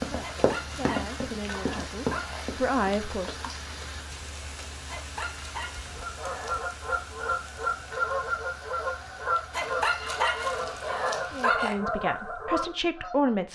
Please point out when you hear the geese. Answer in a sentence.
You can hear the geese from 5.8 to 13.3 s.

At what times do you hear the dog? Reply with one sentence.
The dog can be heard from 0.2 to 2.5 s, from 4.8 to 6.6 s and from 9.5 to 11.8 s.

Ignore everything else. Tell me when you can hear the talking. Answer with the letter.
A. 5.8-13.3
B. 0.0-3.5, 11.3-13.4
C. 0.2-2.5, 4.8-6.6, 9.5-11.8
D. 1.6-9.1
B.